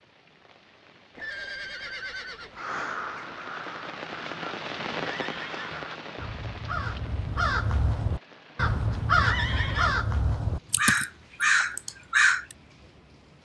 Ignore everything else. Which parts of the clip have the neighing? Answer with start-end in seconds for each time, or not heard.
1.1-2.6, 5.0-5.9, 9.2-10.0.